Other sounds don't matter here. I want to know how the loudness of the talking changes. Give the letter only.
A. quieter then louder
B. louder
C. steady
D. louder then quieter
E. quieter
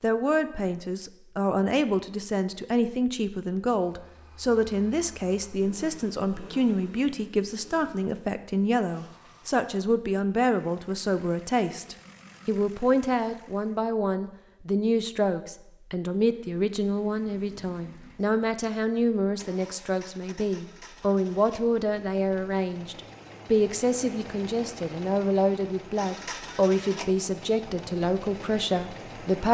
C.